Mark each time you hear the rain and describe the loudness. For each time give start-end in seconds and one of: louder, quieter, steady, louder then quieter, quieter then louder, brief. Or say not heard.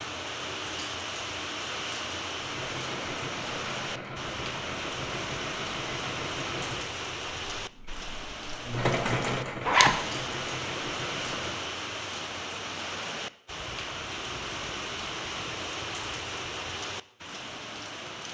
0.0-18.2 steady.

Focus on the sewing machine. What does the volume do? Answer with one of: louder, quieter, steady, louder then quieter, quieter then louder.
louder then quieter.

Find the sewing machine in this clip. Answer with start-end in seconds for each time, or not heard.
2.4-11.7.